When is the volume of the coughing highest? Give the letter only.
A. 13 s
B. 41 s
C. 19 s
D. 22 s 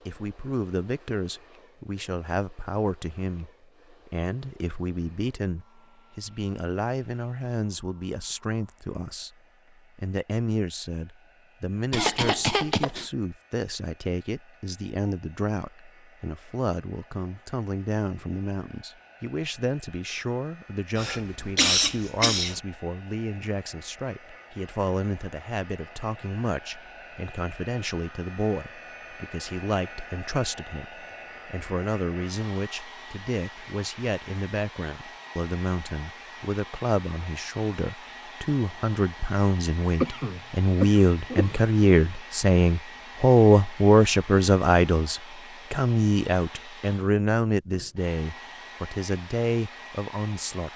D.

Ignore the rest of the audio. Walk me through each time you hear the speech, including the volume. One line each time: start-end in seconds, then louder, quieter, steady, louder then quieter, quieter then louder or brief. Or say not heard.
0.1-9.3 steady
9.9-50.7 louder.